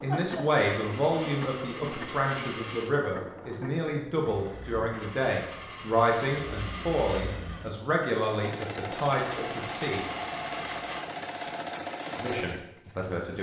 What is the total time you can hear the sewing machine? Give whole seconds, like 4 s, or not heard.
13 s.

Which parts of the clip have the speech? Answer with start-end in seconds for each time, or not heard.
0.0-10.1, 12.2-13.3.